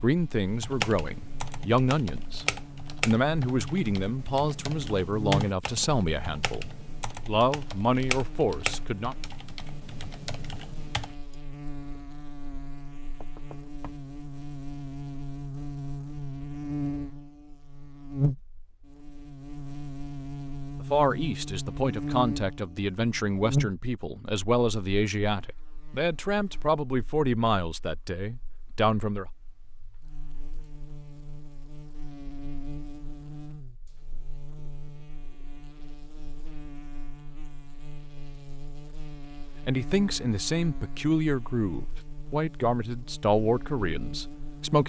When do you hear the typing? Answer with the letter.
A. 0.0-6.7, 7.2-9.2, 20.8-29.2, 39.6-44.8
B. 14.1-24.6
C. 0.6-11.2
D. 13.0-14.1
C.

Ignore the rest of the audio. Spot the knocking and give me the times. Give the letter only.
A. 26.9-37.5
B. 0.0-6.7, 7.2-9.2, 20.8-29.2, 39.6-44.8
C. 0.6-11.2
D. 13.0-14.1
D.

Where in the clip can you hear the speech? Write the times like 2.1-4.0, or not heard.
0.0-6.7, 7.2-9.2, 20.8-29.2, 39.6-44.8.